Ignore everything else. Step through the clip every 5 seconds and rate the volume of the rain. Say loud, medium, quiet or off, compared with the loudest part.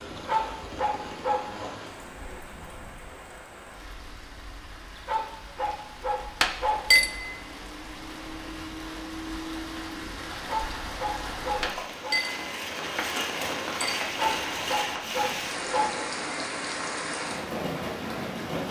medium, medium, loud, loud.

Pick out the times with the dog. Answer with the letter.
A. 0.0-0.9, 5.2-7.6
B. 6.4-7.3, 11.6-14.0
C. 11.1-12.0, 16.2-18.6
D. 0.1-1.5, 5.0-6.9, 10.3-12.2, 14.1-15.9
D.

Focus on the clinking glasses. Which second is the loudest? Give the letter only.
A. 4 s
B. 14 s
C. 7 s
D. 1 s
C.